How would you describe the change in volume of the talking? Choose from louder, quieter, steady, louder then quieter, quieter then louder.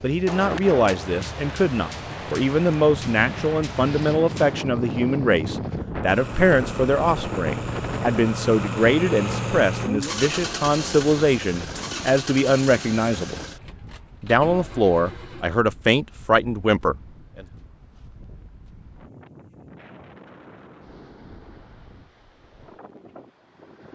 steady.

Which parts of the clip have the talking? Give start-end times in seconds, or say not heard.
0.0-13.3, 14.2-17.4.